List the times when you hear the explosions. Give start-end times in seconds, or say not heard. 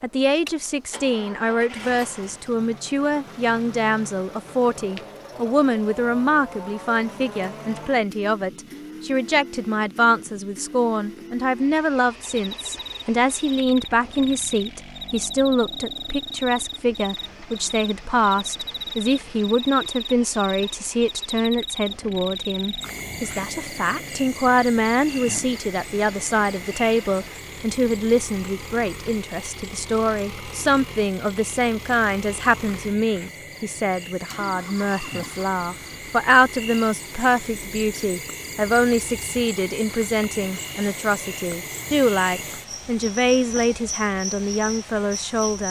not heard.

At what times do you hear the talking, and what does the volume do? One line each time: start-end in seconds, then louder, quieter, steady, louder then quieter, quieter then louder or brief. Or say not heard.
0.0-45.6 steady.